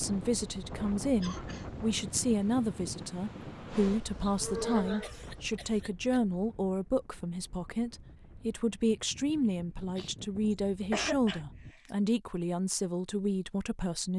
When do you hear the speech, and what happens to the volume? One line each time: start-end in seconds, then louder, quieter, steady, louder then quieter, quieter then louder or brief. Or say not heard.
0.0-14.1 steady.